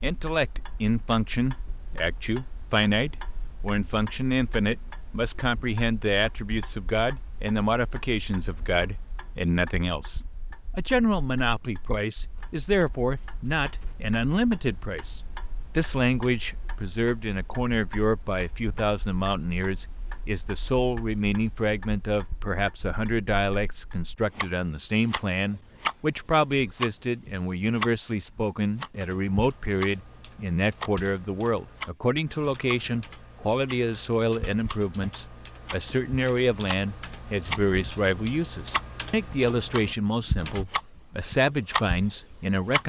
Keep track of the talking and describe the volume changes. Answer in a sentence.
The volume of the talking stays about the same.